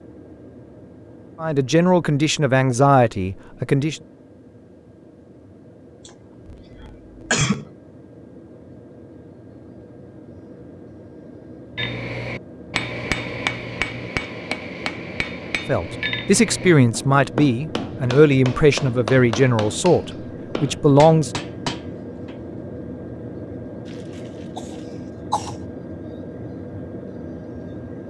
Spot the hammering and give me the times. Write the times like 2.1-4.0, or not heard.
11.8-22.4.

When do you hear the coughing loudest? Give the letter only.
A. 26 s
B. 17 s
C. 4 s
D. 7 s
D.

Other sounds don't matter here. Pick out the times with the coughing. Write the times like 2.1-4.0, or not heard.
6.0-7.7, 24.6-25.6.